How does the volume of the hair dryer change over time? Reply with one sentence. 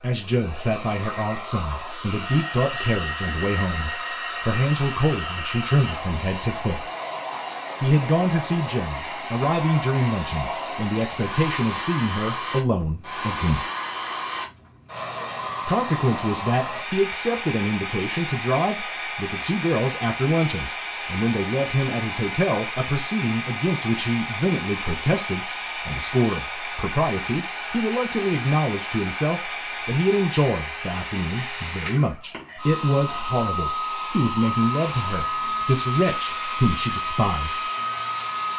The volume of the hair dryer stays about the same.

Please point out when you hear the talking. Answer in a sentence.
The talking can be heard from 0.0 to 6.9 s, from 7.8 to 13.7 s and from 15.7 to 37.6 s.